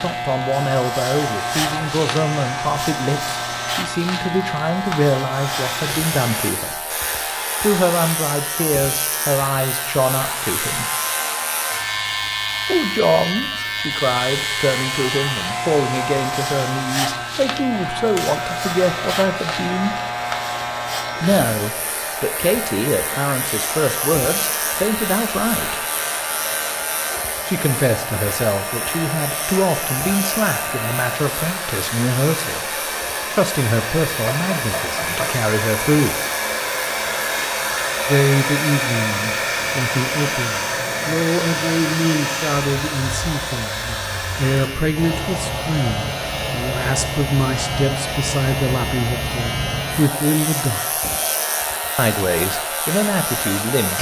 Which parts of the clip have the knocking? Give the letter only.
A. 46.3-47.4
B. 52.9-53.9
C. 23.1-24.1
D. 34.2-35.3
D.